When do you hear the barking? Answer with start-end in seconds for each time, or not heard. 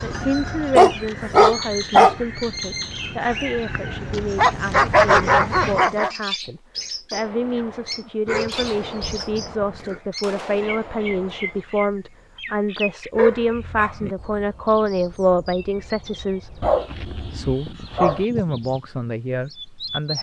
0.8-2.1, 4.3-6.1, 8.2-10.0, 13.2-14.2, 16.6-18.2.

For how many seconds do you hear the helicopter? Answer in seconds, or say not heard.
not heard.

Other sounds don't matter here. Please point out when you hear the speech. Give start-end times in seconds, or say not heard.
0.0-20.1.